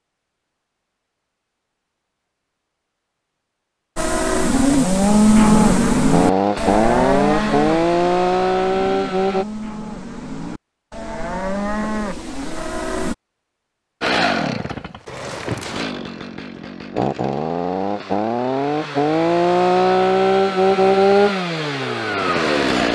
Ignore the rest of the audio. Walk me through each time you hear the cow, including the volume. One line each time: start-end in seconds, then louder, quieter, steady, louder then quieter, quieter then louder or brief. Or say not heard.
4.0-13.2 quieter then louder.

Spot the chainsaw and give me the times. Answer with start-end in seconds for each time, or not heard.
6.1-9.4, 14.0-22.8.